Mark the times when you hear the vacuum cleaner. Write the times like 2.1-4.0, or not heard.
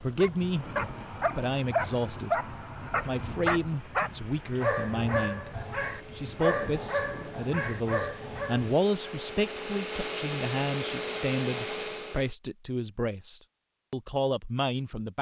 0.2-12.3.